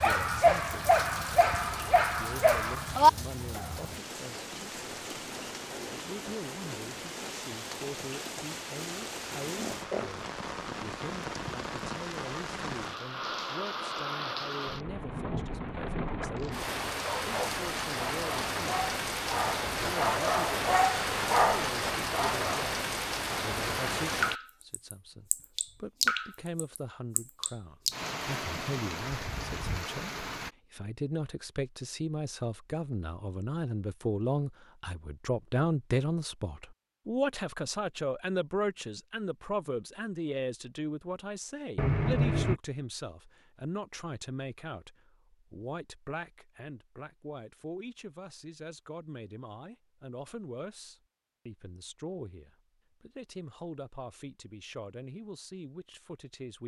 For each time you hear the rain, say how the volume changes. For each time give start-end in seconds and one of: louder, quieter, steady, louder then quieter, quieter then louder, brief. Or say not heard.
0.0-30.5 louder.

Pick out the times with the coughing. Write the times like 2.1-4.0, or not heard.
9.6-10.1, 41.8-42.6.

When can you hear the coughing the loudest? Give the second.
42 s.